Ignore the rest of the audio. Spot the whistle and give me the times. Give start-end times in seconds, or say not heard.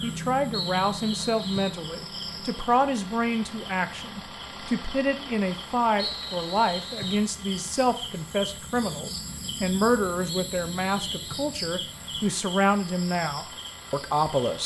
0.5-1.8, 6.0-7.3, 10.3-11.6.